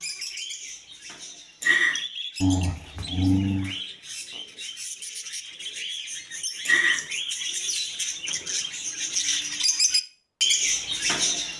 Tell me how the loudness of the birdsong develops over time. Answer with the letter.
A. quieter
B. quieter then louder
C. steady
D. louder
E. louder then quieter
D.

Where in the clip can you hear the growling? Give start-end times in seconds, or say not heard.
2.4-3.8.